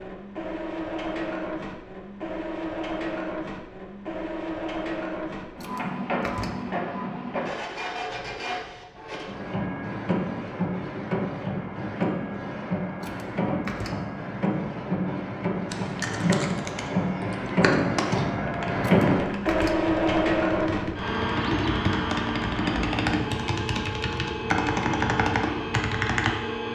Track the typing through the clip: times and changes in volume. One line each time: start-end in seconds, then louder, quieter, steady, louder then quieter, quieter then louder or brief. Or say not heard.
15.7-26.4 quieter then louder.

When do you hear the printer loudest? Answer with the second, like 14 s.
19 s.